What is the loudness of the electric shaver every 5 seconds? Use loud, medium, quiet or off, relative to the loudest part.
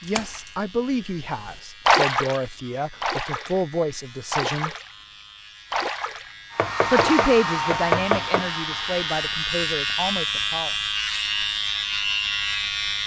quiet, medium, loud.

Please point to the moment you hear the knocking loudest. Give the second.
8 s.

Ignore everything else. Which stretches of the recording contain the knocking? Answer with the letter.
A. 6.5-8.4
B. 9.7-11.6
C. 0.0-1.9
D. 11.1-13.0
A.